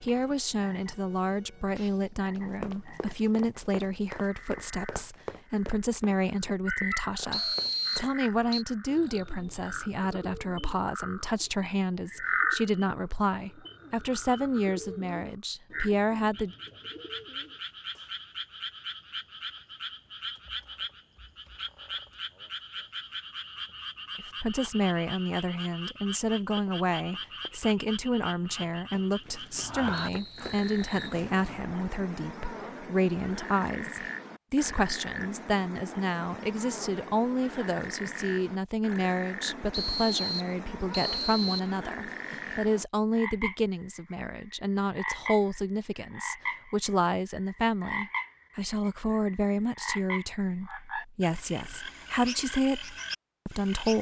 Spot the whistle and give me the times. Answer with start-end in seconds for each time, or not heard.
7.3-8.7, 29.9-31.2, 39.7-41.7.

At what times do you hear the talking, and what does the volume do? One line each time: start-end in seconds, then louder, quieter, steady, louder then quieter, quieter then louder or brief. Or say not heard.
0.0-16.6 steady
24.1-53.9 steady.